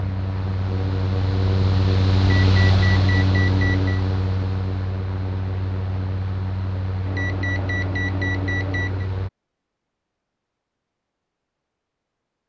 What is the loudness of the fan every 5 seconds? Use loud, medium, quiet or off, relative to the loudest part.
loud, medium, off.